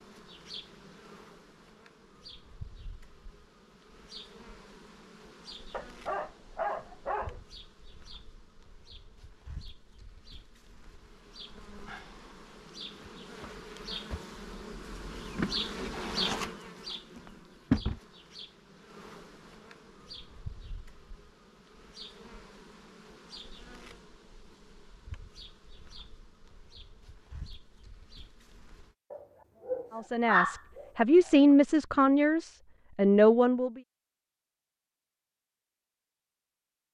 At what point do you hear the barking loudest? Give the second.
30 s.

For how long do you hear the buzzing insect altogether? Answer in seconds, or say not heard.
29 s.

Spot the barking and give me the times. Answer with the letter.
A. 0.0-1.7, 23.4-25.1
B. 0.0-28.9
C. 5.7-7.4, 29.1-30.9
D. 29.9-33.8
C.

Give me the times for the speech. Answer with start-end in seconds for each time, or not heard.
29.9-33.8.